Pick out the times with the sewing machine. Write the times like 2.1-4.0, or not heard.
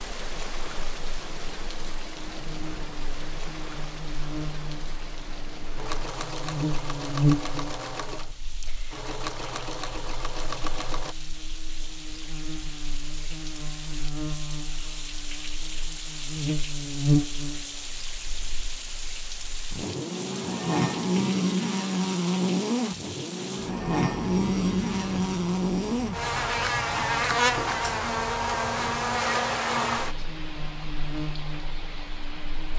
5.8-11.2.